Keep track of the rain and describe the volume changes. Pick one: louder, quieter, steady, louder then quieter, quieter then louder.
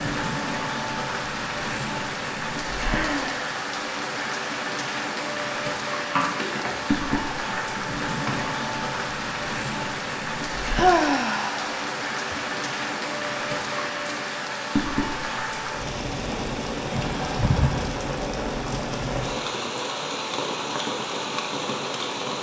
steady.